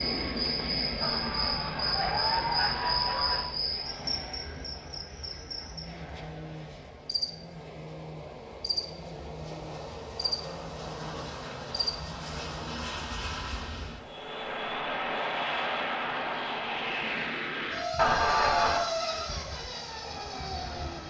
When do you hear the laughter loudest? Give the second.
18 s.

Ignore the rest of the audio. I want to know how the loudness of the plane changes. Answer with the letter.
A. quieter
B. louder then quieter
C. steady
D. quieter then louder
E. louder
D.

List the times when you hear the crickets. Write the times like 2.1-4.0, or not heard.
0.0-12.8.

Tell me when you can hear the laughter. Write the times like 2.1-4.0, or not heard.
1.0-3.5, 17.9-18.9.